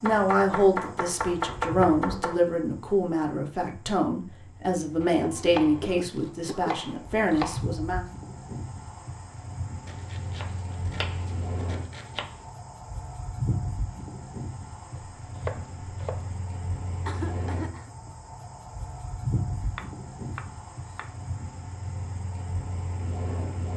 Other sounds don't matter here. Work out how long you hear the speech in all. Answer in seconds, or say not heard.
8 s.